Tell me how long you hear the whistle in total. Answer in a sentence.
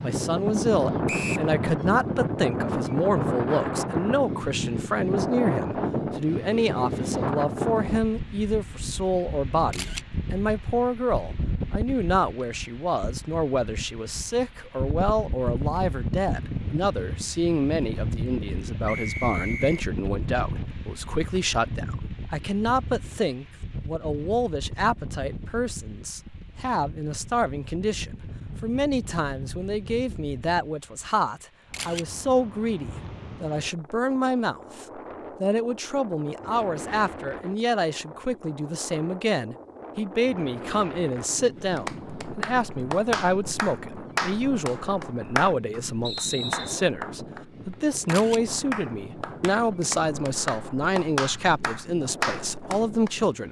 The whistle can be heard for 2 seconds in total.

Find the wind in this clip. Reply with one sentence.
You can hear the wind from 0.0 to 53.4 s.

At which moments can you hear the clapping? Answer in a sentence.
The clapping can be heard from 41.6 to 53.2 s.